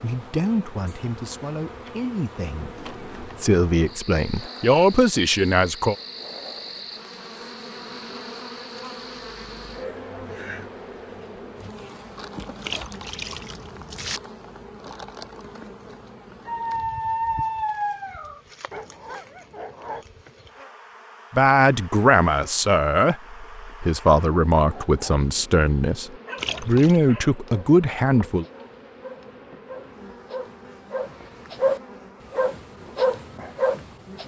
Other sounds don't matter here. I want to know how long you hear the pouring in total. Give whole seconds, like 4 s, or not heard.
2 s.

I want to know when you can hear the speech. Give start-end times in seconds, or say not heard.
0.0-6.0, 21.3-28.4.